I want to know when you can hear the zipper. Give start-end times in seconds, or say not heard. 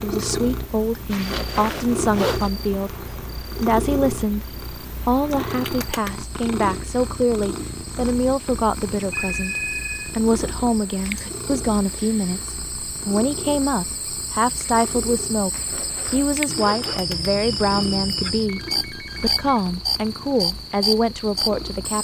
1.1-2.5, 15.5-17.0.